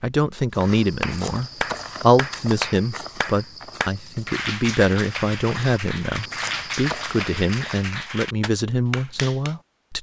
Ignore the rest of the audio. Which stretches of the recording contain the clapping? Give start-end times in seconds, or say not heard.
0.6-9.6.